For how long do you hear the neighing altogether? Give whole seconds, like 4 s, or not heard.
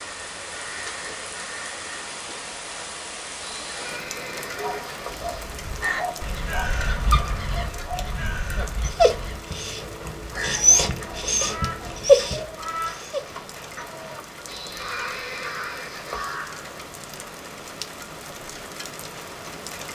4 s.